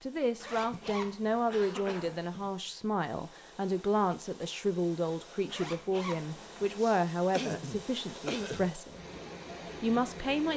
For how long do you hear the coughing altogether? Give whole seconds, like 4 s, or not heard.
4 s.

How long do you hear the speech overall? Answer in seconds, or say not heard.
10 s.